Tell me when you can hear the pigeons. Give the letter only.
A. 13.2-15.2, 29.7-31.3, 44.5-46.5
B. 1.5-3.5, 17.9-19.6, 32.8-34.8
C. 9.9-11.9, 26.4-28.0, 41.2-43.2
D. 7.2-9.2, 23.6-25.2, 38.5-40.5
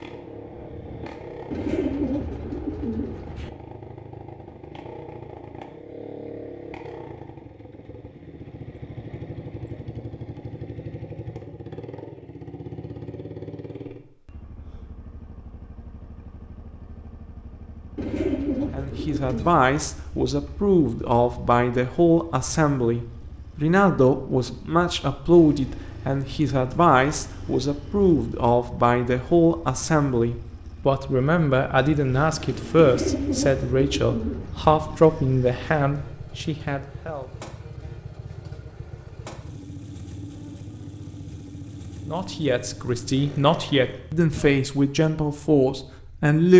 B.